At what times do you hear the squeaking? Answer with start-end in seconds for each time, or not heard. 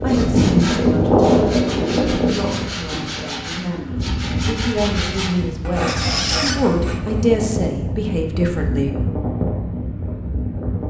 5.8-6.6.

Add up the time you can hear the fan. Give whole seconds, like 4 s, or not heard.
11 s.